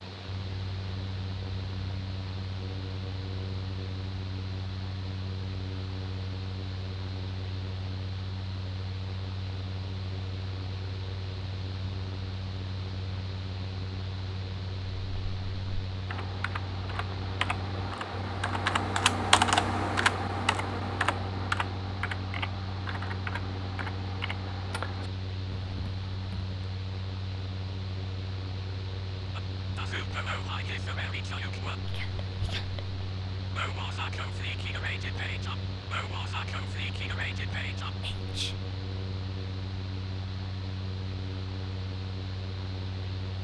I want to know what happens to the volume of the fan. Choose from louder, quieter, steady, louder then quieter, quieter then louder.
steady.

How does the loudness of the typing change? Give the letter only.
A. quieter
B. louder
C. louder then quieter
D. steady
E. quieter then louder
C.